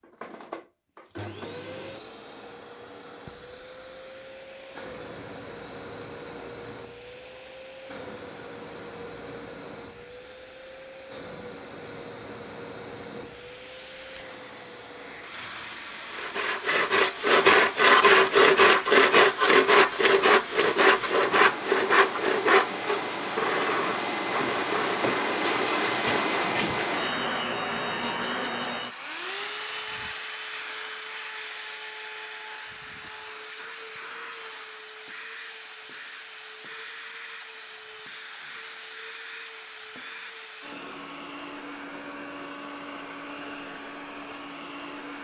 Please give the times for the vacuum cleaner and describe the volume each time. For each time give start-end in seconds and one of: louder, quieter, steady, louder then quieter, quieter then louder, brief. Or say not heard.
0.0-45.1 louder then quieter.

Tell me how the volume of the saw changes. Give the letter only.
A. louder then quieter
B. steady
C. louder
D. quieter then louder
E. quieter
E.